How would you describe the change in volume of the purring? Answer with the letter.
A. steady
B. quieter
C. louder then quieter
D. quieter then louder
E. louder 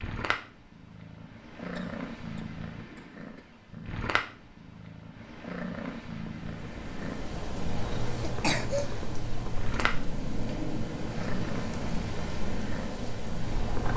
A.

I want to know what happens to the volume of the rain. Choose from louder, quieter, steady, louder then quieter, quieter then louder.
steady.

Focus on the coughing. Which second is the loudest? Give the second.
9 s.